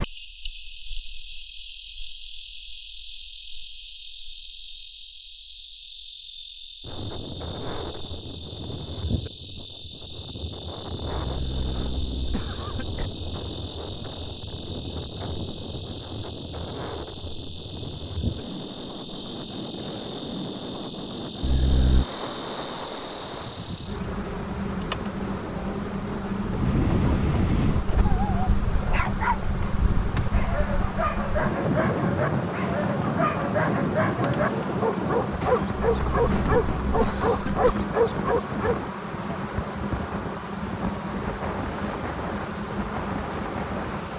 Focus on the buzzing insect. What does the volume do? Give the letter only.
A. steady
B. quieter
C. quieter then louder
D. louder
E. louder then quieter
A.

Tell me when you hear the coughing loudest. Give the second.
22 s.